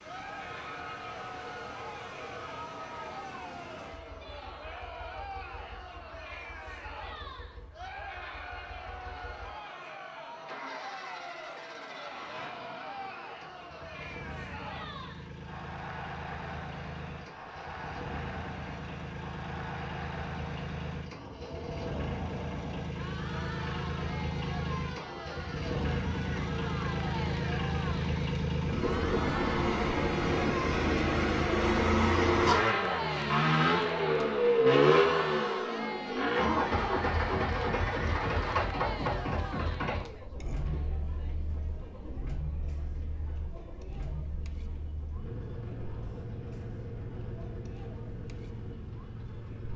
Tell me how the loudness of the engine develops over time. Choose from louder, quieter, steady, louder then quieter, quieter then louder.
louder then quieter.